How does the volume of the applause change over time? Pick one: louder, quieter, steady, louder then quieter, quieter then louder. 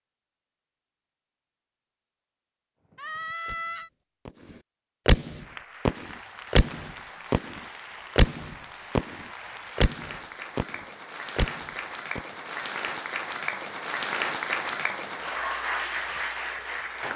louder.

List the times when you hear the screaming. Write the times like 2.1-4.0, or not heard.
3.0-3.9.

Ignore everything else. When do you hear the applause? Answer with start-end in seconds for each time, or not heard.
5.2-17.1.